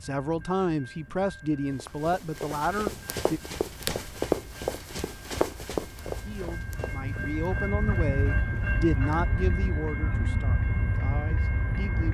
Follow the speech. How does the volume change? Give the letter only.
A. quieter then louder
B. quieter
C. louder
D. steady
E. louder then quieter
B.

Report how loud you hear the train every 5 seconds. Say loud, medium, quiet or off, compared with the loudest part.
quiet, loud, loud.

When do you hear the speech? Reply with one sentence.
You can hear the speech from 0.0 to 3.4 s and from 6.1 to 12.1 s.